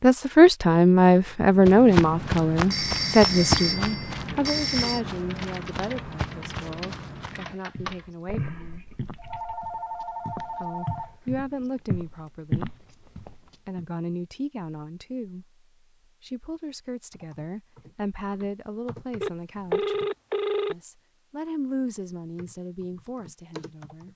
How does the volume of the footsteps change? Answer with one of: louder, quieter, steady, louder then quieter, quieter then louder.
quieter then louder.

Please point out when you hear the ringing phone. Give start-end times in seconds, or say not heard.
2.7-5.0, 9.1-11.4, 19.2-20.8.